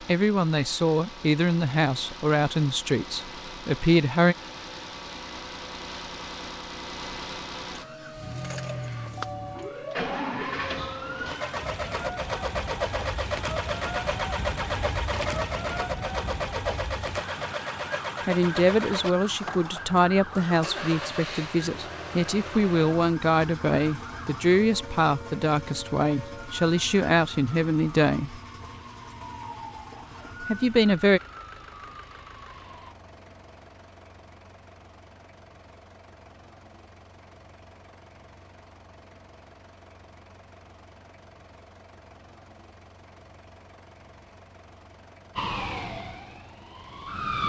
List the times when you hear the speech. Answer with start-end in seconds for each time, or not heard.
0.1-4.3, 18.2-28.4, 30.4-31.2.